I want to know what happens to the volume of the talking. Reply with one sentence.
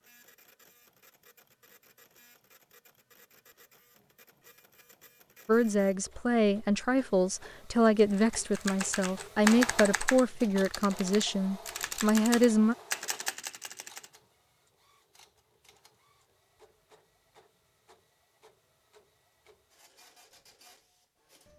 The loudness of the talking stays about the same.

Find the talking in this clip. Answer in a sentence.
You can hear the talking from 5.5 to 12.8 s.